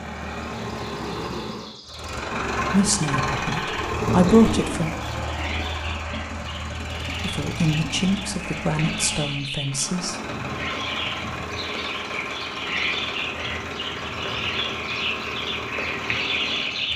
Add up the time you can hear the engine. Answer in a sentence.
You can hear the engine for 17 seconds altogether.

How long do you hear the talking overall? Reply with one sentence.
The talking can be heard for 5 seconds in total.